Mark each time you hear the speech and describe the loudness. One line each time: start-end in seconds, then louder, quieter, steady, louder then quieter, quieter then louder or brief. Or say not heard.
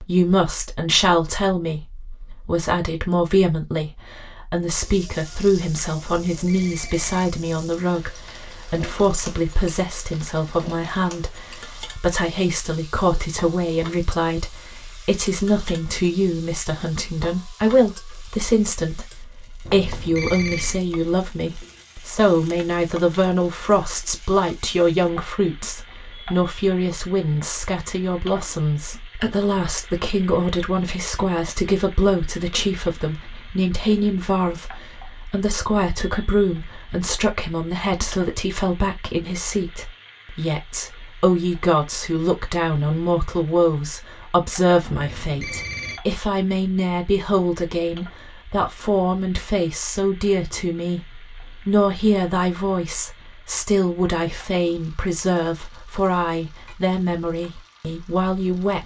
0.0-58.8 steady.